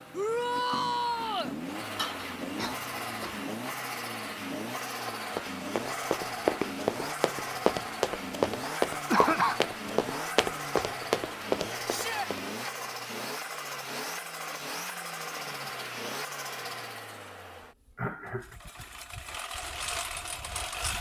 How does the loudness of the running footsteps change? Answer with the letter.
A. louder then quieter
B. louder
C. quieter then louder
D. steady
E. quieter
D.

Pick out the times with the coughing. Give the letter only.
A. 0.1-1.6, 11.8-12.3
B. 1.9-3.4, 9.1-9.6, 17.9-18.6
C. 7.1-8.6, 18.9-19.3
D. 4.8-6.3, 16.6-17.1
B.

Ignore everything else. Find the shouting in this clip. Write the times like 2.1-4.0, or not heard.
0.1-1.6, 11.8-12.3.